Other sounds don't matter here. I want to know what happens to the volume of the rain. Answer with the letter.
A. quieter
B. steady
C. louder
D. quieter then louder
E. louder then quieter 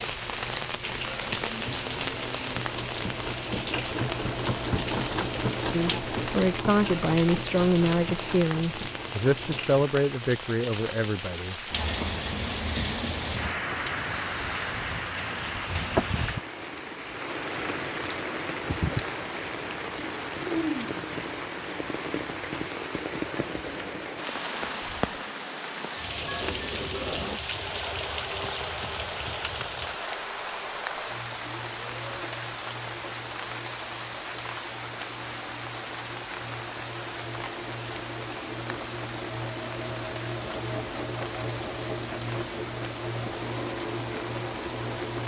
A.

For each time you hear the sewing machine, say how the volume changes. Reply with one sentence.
You can hear the sewing machine from 0.0 to 9.8 s, getting louder then quieter; and from 25.9 to 45.2 s, getting quieter then louder.